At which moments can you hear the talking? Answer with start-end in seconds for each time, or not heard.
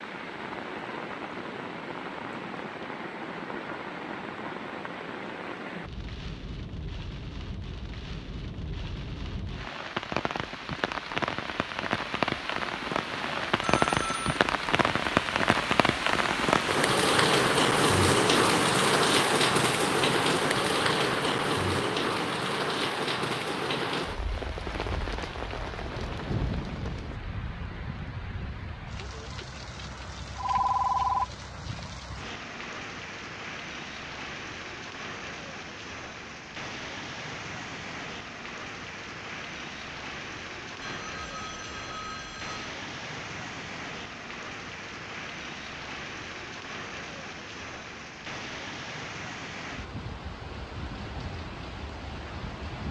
not heard.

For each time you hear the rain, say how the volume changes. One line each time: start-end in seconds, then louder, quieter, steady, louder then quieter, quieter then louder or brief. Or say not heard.
0.0-52.8 louder then quieter.